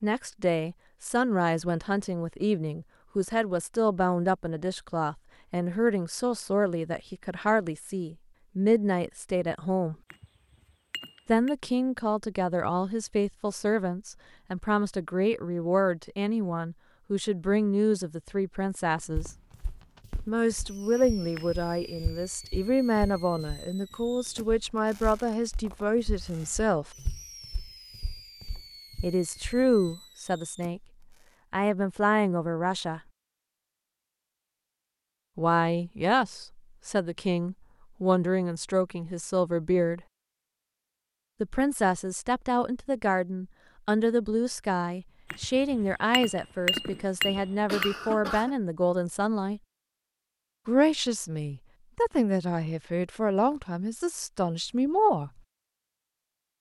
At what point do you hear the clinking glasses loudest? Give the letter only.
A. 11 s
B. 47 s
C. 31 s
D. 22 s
B.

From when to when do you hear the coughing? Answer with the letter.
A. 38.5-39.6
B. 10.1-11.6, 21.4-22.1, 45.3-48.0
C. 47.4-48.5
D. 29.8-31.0
C.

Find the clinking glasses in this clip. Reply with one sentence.
You can hear the clinking glasses from 10.1 to 11.6 s, from 21.4 to 22.1 s and from 45.3 to 48.0 s.